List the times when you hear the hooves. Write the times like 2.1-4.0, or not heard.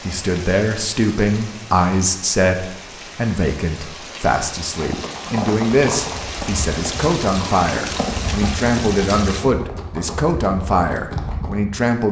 4.8-11.8.